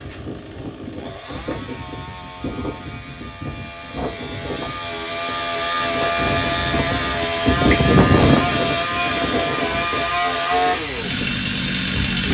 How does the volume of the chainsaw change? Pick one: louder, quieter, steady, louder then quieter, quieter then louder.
louder.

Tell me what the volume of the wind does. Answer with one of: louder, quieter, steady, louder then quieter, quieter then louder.
louder then quieter.